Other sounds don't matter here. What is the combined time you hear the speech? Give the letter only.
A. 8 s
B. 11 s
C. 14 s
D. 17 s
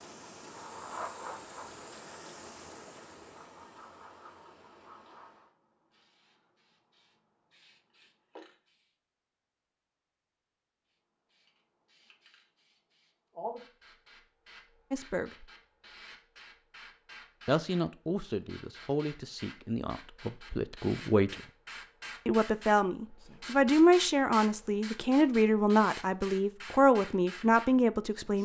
B.